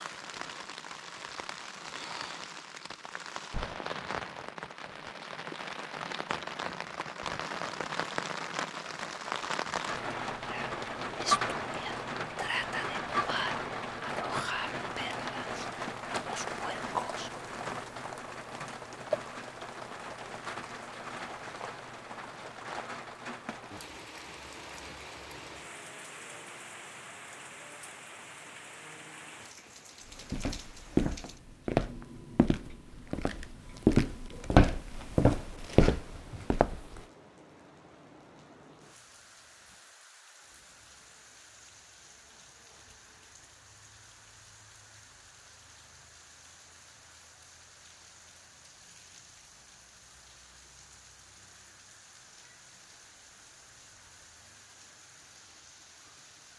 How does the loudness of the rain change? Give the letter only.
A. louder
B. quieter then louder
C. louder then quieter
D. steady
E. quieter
E.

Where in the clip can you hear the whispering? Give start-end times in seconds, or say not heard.
10.4-17.3.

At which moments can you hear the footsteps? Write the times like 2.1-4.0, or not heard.
30.1-37.0.